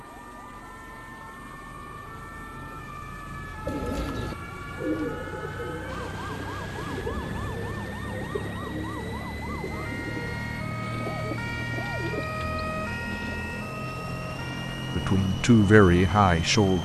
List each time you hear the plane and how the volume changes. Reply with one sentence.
You can hear the plane from 0.0 to 16.7 s, getting louder.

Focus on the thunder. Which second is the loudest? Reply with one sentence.
The volume of the thunder peaks at 7 seconds.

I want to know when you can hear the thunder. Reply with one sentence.
The thunder can be heard from 5.8 to 7.7 s.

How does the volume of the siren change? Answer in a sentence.
The volume of the siren goes up.